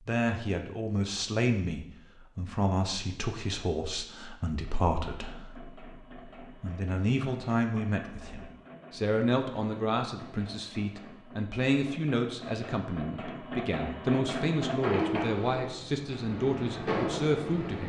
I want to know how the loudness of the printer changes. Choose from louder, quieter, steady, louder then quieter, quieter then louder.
louder.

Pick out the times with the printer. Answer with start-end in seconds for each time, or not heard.
4.5-17.8.